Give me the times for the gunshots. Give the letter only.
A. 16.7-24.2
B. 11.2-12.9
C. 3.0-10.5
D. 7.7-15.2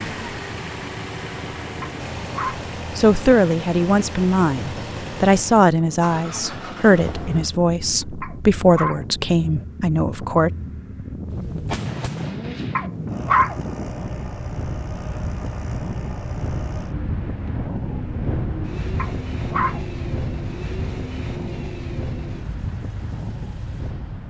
B.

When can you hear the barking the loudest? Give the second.
13 s.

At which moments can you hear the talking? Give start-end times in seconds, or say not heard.
3.0-10.5.